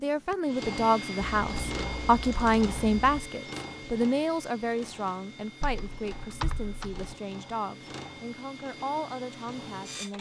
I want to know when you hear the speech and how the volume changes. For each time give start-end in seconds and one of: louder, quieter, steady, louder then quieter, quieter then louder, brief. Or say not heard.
0.0-10.1 quieter.